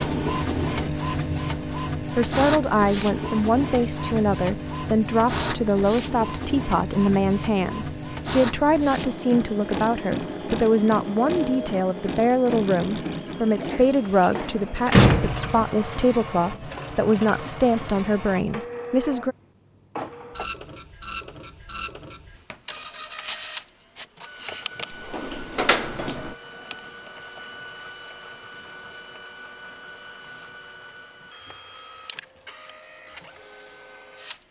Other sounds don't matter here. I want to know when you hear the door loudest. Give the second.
15 s.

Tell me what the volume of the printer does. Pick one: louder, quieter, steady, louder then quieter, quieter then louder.
quieter.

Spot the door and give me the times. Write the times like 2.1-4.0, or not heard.
13.7-15.6, 25.1-26.4.